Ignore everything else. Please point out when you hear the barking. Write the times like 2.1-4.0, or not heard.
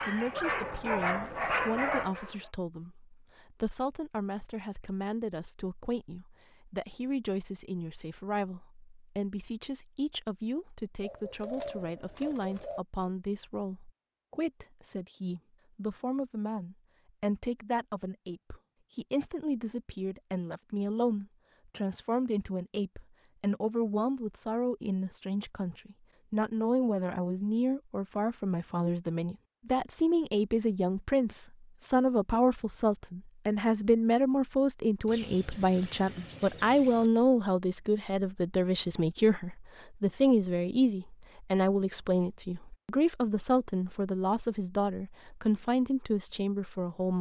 0.0-2.5.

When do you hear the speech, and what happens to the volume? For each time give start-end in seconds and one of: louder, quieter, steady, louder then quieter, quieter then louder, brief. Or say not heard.
0.1-47.1 louder.